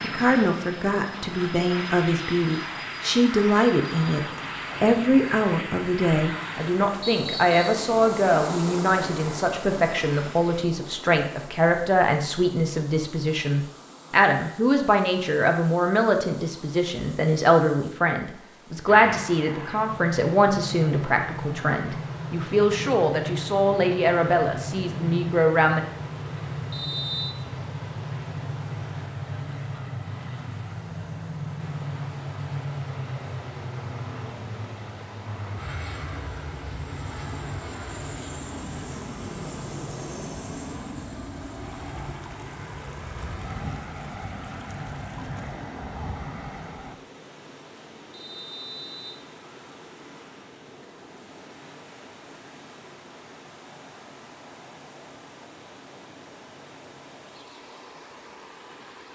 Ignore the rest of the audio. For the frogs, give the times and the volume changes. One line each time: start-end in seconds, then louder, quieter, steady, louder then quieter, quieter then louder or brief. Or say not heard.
not heard.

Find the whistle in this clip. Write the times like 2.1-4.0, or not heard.
7.0-7.8, 26.7-27.4, 48.1-49.2.